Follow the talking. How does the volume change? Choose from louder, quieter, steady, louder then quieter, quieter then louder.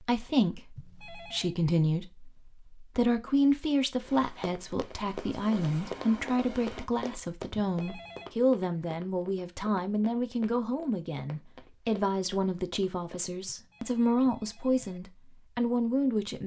steady.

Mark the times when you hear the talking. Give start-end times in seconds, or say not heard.
0.0-16.4.